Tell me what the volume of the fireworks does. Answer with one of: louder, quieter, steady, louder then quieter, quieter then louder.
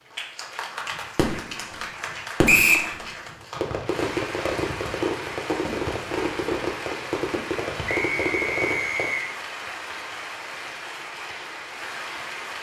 steady.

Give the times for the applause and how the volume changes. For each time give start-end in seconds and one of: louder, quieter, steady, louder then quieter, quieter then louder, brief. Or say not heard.
0.0-12.5 steady.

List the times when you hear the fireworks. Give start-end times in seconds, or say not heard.
0.8-9.1.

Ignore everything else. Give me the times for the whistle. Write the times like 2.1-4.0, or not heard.
2.5-2.9, 7.8-9.2.